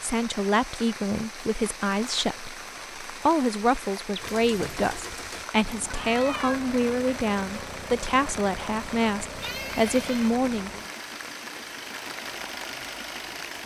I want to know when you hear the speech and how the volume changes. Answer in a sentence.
The speech can be heard from 0.0 to 10.7 s, at a steady volume.